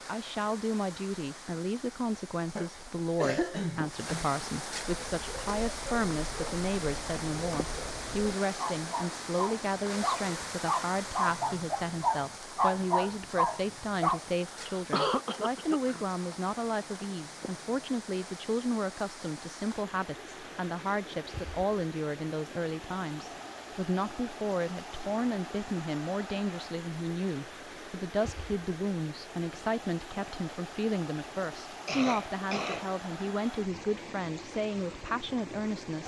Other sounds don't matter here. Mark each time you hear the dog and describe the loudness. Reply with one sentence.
You can hear the dog from 4.8 to 14.2 s, getting louder.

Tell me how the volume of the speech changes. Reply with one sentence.
The volume of the speech stays about the same.